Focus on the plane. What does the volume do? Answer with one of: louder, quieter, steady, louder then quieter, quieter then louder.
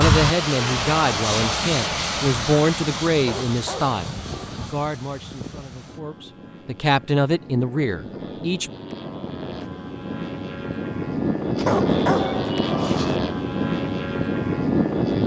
quieter then louder.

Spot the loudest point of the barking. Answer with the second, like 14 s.
12 s.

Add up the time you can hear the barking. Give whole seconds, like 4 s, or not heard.
3 s.